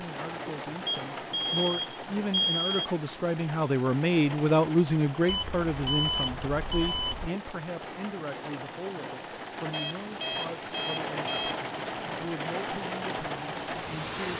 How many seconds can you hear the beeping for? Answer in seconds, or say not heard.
6 s.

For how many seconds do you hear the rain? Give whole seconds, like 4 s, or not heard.
14 s.